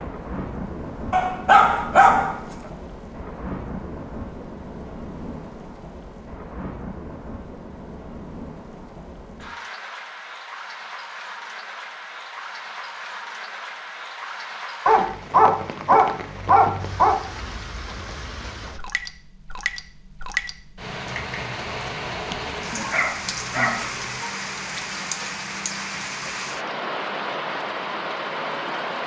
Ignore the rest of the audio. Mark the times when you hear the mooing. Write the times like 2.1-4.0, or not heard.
not heard.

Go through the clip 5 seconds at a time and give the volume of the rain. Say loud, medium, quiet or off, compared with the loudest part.
medium, medium, medium, medium, loud, loud.